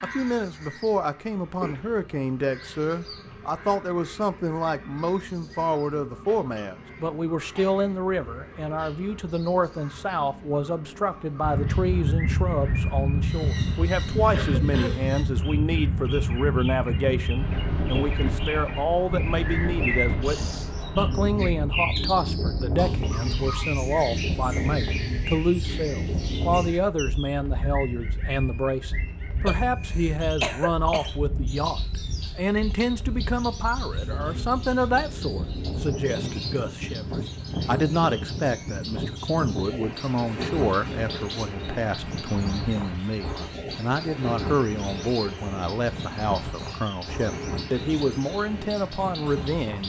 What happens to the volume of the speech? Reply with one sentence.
The volume of the speech stays about the same.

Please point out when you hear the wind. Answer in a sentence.
The wind can be heard from 11.4 to 49.8 s.